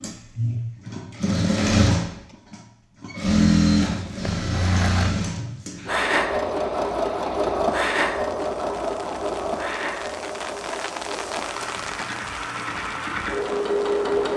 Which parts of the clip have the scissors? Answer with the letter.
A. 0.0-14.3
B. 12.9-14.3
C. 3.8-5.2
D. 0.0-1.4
C.